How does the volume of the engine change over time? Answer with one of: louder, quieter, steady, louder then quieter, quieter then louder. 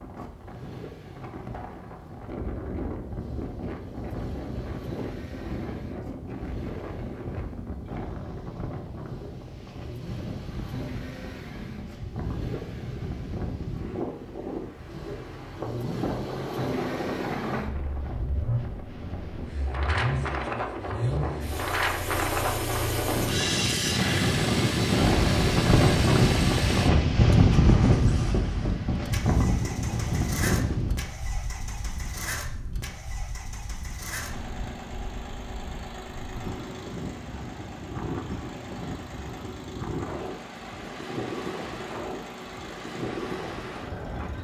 louder then quieter.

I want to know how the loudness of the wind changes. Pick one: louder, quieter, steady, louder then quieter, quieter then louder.
louder then quieter.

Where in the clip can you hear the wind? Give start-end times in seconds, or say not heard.
0.0-44.3.